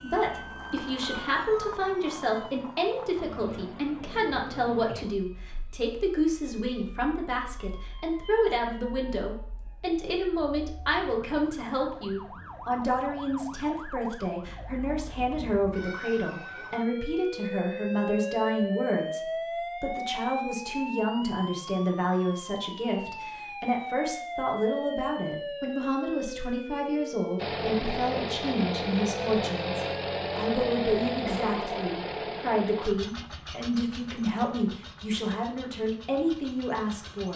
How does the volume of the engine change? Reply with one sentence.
The loudness of the engine goes down.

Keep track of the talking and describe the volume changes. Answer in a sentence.
The volume of the talking stays about the same.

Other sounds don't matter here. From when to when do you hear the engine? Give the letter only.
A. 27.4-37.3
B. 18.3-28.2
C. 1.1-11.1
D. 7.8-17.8
A.